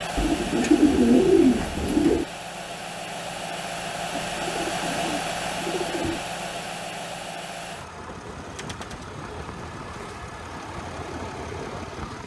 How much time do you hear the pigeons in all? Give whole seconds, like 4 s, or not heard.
6 s.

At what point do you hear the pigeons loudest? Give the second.
1 s.